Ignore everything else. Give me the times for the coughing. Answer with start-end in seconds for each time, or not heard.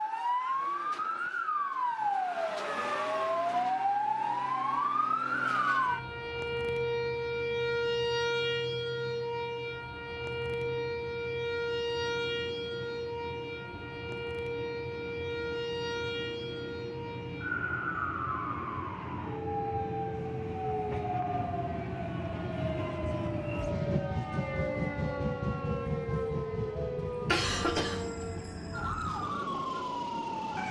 26.7-28.0.